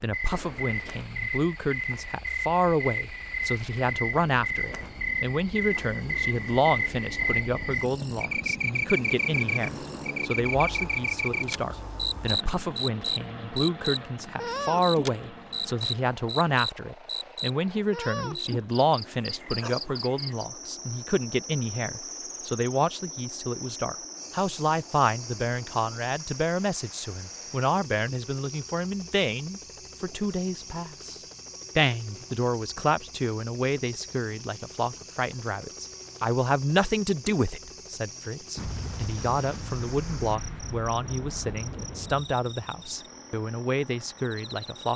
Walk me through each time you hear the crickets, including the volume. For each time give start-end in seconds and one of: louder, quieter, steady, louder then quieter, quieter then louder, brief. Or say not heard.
0.0-44.9 quieter.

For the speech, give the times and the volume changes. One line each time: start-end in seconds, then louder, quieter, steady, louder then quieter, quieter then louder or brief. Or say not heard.
0.0-44.9 steady.